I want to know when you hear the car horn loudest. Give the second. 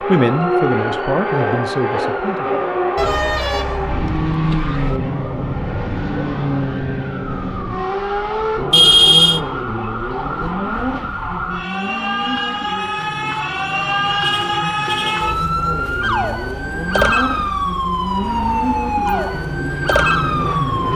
9 s.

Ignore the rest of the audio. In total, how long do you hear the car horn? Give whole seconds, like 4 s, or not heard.
4 s.